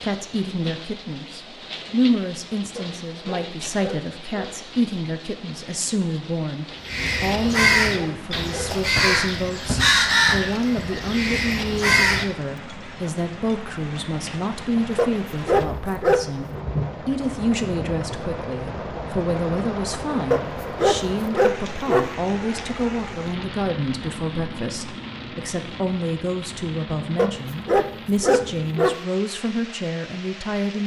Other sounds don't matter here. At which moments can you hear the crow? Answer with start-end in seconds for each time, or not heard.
6.8-12.2.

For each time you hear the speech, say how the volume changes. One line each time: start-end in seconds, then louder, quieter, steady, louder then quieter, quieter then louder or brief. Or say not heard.
0.0-30.8 steady.